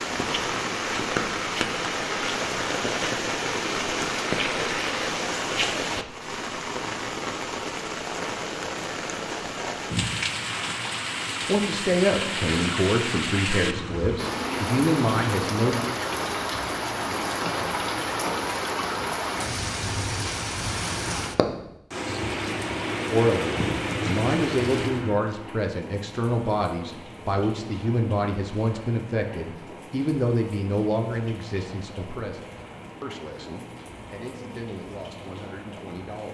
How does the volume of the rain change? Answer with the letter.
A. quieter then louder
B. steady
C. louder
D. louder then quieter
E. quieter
E.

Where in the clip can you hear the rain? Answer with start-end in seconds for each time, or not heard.
0.0-36.3.